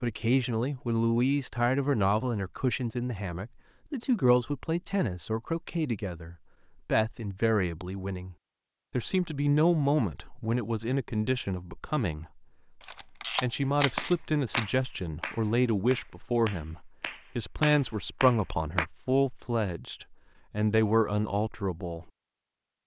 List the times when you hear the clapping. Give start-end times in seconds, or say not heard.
13.9-18.9.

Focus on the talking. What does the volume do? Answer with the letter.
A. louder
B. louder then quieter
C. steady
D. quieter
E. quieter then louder
C.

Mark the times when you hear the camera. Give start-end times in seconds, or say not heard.
12.8-14.7.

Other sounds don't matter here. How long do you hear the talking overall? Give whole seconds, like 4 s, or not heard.
21 s.